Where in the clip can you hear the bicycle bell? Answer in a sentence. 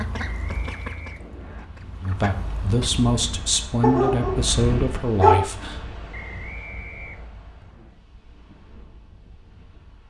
You can't hear the bicycle bell here.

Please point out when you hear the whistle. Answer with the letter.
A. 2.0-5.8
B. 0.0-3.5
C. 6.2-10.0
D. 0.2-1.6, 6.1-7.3
D.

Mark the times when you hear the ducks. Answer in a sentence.
You can hear the ducks from 0.0 to 3.5 s.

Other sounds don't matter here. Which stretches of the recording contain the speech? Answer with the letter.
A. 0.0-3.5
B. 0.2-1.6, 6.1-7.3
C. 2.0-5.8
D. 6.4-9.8
C.